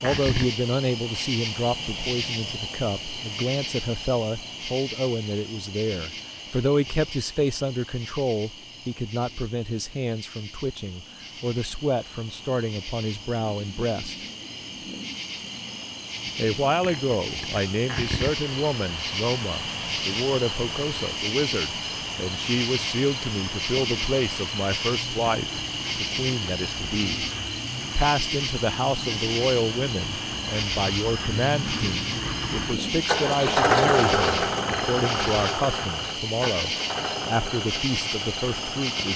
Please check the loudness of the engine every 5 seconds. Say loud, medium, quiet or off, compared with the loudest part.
off, off, off, quiet, quiet, quiet, loud, medium.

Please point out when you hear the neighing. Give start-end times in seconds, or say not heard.
not heard.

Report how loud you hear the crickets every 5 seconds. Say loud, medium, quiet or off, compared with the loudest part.
loud, medium, medium, loud, loud, loud, loud, loud.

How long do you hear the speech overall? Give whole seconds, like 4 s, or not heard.
36 s.